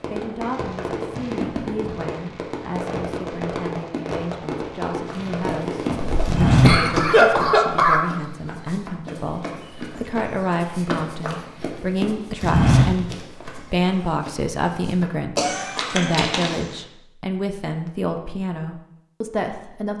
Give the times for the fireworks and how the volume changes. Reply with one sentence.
The fireworks can be heard from 0.0 to 6.5 s, at a steady volume.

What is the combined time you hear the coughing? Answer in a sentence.
You can hear the coughing for 3 seconds altogether.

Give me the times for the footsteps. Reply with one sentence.
The footsteps can be heard from 5.1 to 16.6 s.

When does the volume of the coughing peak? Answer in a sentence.
The volume of the coughing peaks at 7 seconds.